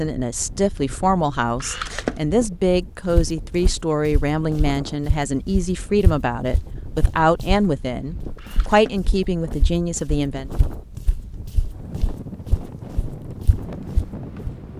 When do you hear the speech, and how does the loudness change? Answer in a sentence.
You can hear the speech from 0.0 to 10.5 s, at a steady volume.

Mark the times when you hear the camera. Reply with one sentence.
You can hear the camera from 1.6 to 2.2 s and from 8.3 to 8.9 s.